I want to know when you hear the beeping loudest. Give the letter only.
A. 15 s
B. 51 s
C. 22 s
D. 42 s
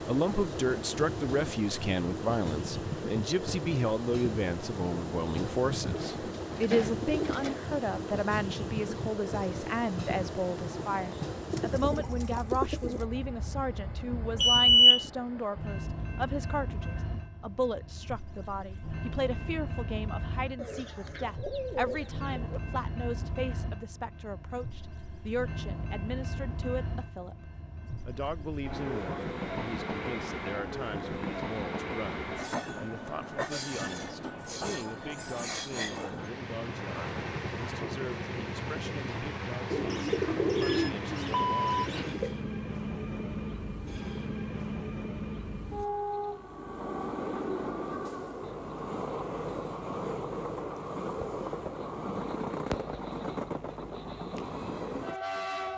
A.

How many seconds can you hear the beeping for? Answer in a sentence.
You can hear the beeping for 2 seconds altogether.